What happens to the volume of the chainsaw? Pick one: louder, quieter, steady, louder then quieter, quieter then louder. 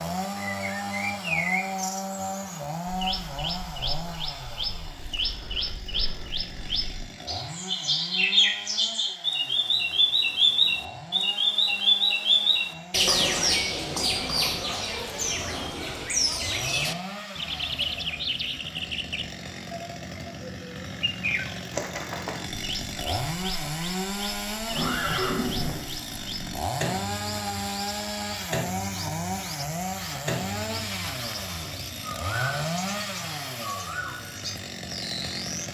quieter then louder.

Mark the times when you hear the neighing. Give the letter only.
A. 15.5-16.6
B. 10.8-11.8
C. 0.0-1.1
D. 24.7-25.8
D.